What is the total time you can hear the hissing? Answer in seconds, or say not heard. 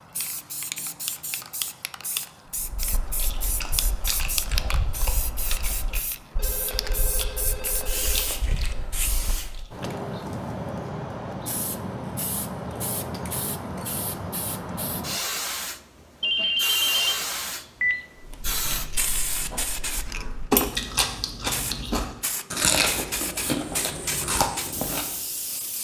26 s.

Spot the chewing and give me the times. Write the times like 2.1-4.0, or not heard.
2.5-9.7, 18.2-25.2.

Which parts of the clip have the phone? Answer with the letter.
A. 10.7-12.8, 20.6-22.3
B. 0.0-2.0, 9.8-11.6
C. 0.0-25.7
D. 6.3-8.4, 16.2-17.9
D.